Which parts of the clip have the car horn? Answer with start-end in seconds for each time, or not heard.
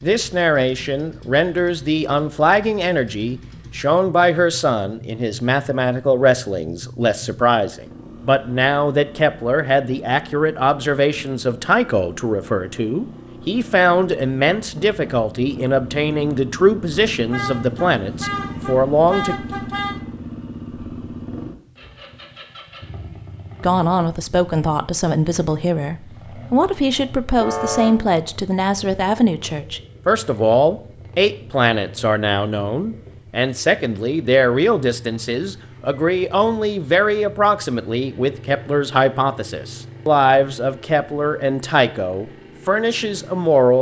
17.3-20.0, 27.4-28.0.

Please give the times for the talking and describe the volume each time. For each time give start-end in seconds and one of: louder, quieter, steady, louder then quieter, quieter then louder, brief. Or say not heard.
0.0-19.4 steady
23.6-43.7 steady.